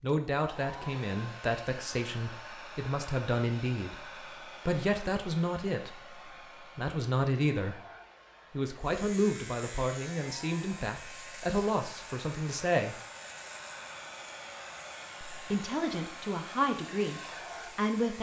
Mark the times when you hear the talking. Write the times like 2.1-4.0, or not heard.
0.0-7.8, 8.5-12.9, 15.3-18.1.